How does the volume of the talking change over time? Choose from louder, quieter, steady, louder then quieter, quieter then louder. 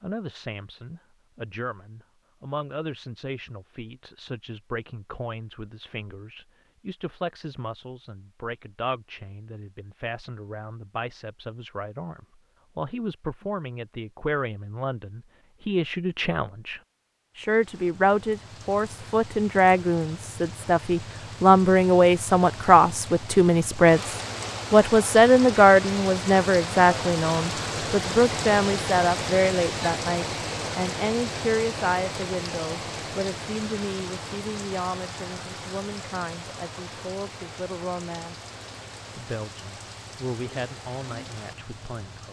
louder then quieter.